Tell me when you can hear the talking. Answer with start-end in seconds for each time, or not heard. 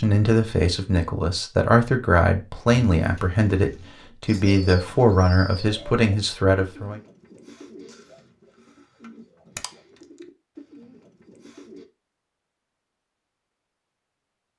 0.0-7.0.